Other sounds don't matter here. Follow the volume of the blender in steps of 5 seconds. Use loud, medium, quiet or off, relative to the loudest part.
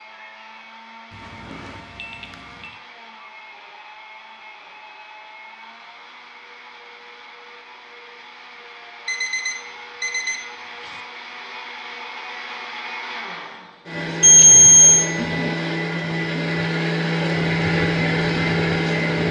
quiet, quiet, medium, loud.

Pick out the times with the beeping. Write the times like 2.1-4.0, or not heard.
1.1-2.8, 9.1-11.0, 14.2-15.1.